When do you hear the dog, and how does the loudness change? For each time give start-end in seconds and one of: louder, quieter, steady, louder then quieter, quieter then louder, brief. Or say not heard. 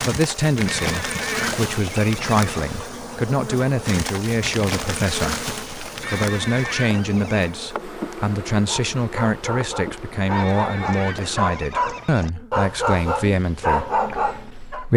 8.7-14.8 louder.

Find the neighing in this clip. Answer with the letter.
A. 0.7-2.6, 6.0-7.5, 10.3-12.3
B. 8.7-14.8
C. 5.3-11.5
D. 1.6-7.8
A.